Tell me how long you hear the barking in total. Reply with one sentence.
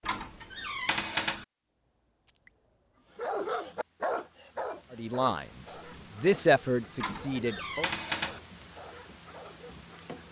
The barking can be heard for 7 seconds in total.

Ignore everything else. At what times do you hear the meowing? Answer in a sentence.
You can hear the meowing from 0.0 to 1.4 s and from 7.0 to 8.4 s.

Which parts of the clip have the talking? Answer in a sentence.
You can hear the talking from 4.9 to 7.9 s.